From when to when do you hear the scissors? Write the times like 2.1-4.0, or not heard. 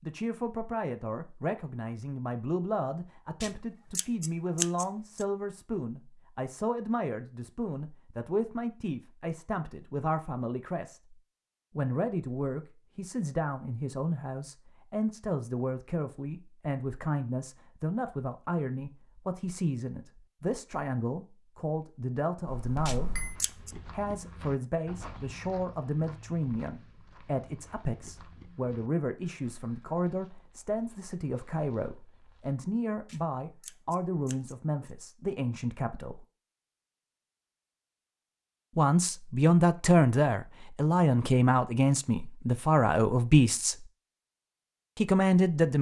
3.4-5.2, 22.9-23.8, 33.0-34.9.